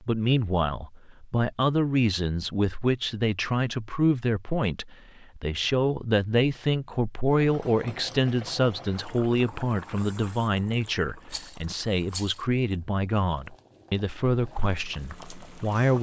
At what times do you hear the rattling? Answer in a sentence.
You can hear the rattling from 11.2 to 12.4 s.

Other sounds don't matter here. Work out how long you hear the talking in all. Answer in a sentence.
You can hear the talking for 16 seconds altogether.